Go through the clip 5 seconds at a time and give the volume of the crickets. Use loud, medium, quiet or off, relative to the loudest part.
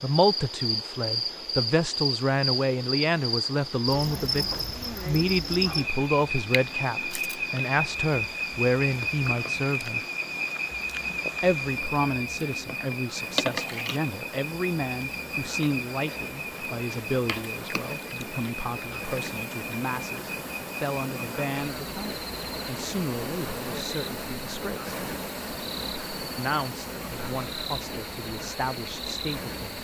loud, loud, loud, medium, medium, medium.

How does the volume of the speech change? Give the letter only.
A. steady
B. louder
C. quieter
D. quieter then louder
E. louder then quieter
C.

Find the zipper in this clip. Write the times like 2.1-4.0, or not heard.
not heard.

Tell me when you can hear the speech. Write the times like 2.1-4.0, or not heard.
0.0-10.0, 11.4-24.9, 26.4-29.8.